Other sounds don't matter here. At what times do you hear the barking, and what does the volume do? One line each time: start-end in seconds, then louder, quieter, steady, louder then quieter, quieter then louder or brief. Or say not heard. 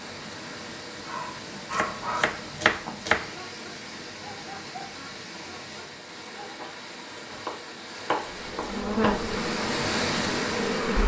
1.0-6.7 quieter.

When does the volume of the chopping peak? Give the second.
3 s.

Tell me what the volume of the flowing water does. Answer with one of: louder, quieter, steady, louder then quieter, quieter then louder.
louder.